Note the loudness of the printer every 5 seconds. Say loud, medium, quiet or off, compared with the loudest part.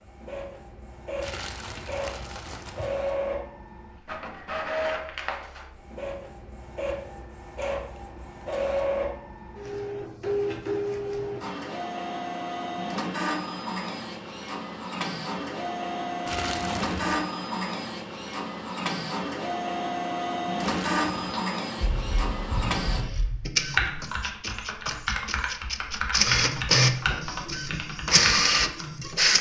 medium, medium, medium, medium, medium, loud.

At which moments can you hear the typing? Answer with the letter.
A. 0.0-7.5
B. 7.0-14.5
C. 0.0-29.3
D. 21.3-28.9
D.